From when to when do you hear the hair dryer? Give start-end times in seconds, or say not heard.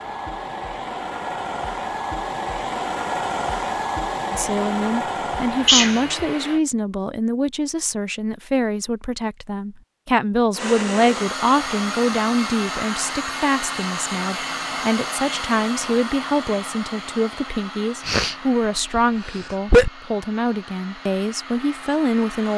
0.0-6.6, 10.5-22.5.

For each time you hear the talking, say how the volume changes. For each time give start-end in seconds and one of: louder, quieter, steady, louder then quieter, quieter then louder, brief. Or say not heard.
4.3-22.5 steady.